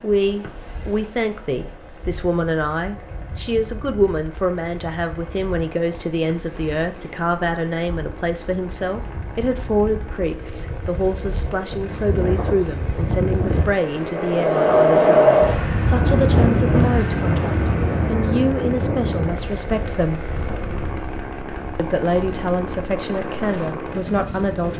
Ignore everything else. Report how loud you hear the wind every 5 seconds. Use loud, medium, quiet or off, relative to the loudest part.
quiet, quiet, loud, loud, quiet.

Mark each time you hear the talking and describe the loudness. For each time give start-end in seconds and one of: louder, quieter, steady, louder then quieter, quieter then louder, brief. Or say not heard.
0.0-20.3 steady
21.8-24.7 brief.